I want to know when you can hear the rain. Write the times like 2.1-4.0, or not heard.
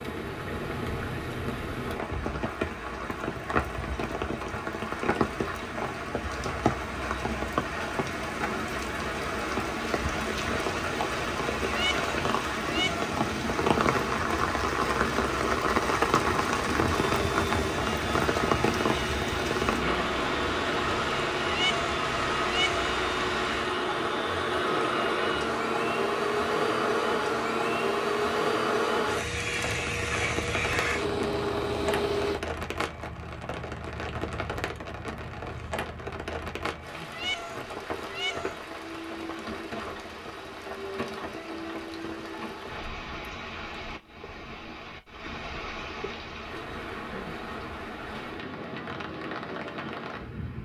0.0-50.5.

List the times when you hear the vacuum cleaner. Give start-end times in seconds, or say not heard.
17.1-32.4.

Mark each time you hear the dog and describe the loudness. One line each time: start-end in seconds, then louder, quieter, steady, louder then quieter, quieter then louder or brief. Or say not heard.
not heard.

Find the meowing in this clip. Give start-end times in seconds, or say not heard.
11.7-13.2, 21.4-22.9, 37.0-38.6.